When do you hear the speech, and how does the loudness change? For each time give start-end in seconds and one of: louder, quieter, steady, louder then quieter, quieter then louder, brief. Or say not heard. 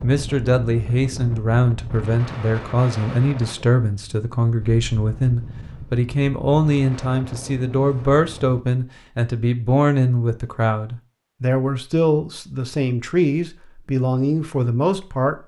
0.0-15.4 steady.